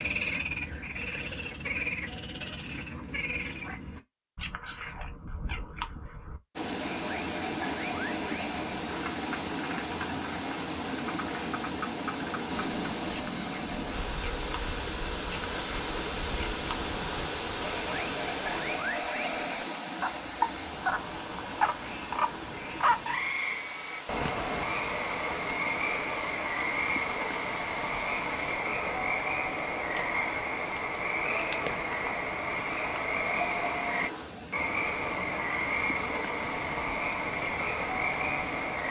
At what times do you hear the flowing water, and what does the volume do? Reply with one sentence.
The flowing water can be heard from 6.5 to 38.8 s, getting quieter.